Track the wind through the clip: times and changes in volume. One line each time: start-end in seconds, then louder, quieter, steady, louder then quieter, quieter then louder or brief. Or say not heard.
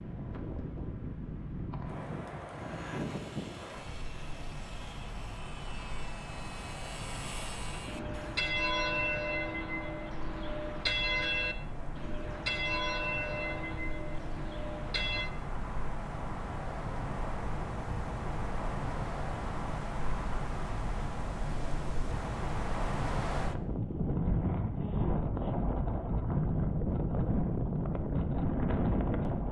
0.0-29.4 louder.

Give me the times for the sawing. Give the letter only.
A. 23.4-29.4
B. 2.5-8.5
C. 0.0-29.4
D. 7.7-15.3
B.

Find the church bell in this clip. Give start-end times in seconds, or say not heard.
7.7-15.3.